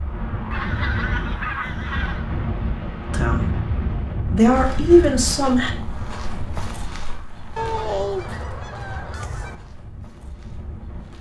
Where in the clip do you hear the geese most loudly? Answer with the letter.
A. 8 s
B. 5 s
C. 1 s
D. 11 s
A.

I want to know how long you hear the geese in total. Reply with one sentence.
The geese can be heard for 4 seconds in total.